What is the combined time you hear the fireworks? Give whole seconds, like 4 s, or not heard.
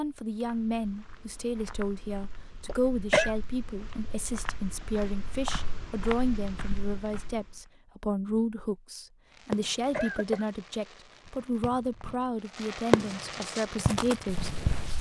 5 s.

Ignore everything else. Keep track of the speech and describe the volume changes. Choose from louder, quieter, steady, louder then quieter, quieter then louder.
steady.